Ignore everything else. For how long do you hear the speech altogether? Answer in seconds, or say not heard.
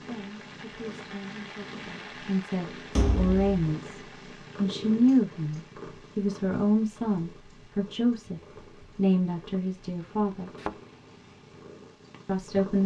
11 s.